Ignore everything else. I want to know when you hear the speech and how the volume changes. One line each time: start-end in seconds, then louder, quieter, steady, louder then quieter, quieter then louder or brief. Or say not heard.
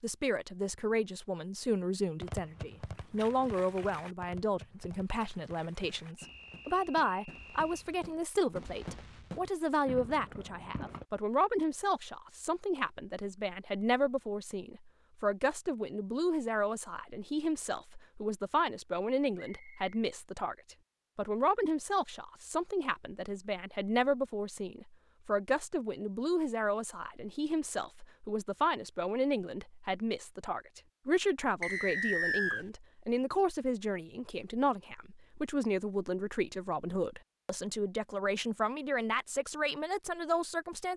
0.0-40.9 steady.